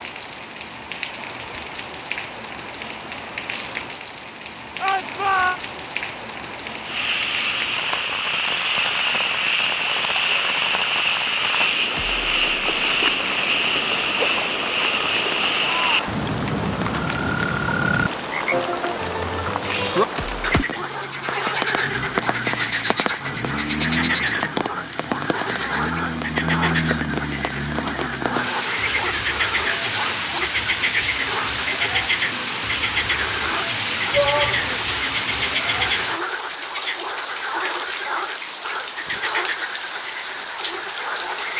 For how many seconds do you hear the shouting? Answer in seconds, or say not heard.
2 s.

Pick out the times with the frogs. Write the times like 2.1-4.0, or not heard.
6.8-41.5.